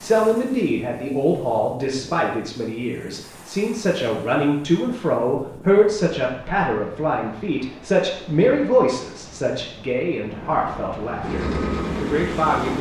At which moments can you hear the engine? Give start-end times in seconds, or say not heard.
11.2-12.7.